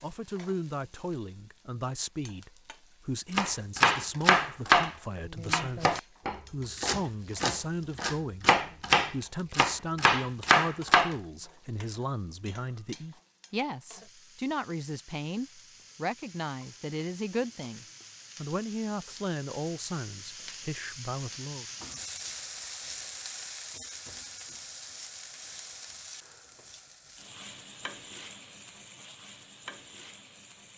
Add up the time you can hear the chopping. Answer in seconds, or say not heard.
8 s.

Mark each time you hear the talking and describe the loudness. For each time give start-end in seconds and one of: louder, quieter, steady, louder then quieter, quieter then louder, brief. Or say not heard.
0.0-21.6 steady.